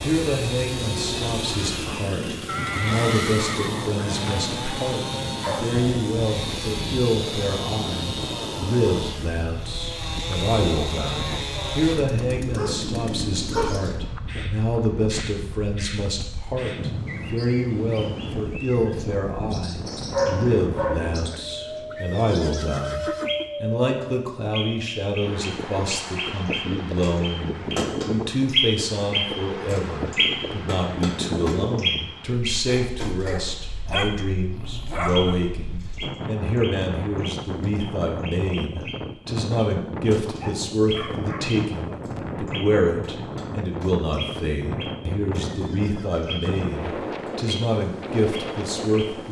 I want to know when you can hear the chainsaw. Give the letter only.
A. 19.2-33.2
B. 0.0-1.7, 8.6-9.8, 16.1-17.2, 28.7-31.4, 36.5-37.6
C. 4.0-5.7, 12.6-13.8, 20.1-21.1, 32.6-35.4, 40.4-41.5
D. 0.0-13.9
D.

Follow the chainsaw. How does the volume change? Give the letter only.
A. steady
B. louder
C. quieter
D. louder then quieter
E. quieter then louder
A.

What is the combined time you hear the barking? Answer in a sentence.
You can hear the barking for 8 seconds altogether.